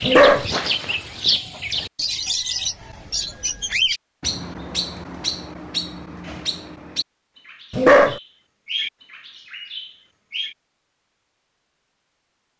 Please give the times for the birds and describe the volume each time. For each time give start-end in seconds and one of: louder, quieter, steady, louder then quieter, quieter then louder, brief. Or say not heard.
0.0-10.6 quieter.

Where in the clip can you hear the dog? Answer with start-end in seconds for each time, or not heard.
0.0-0.5, 7.7-8.2.